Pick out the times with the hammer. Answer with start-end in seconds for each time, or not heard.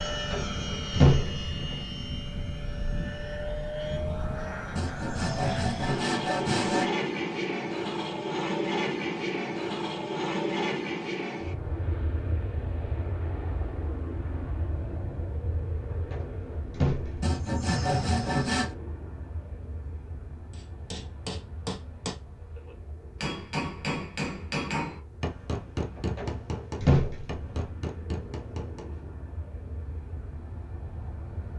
20.5-29.1.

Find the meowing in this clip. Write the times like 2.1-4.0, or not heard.
not heard.